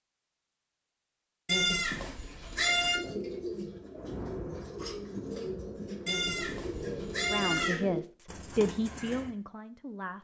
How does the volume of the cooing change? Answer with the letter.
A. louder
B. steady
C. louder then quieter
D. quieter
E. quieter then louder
B.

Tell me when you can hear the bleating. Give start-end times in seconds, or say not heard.
1.4-3.0, 6.0-7.8.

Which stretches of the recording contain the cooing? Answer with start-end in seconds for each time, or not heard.
2.5-9.3.